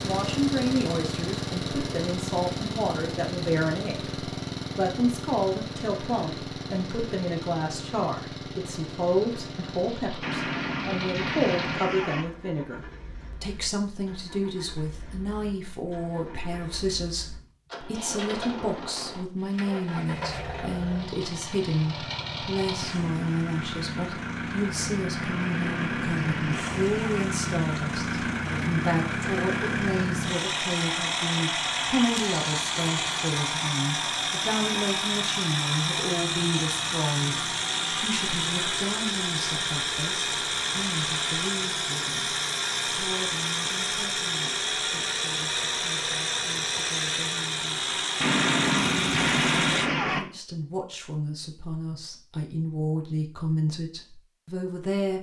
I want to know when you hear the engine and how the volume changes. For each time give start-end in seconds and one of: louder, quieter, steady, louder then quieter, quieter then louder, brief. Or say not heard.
0.0-49.9 quieter then louder.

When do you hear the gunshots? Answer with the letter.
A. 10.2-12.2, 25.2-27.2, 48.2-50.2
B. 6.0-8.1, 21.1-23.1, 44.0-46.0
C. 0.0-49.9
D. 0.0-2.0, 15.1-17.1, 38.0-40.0
A.